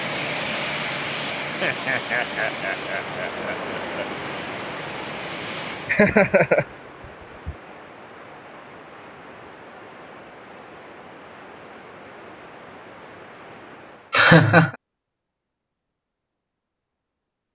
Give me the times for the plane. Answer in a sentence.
The plane can be heard from 0.0 to 6.0 s.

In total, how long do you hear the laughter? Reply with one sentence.
You can hear the laughter for 4 seconds altogether.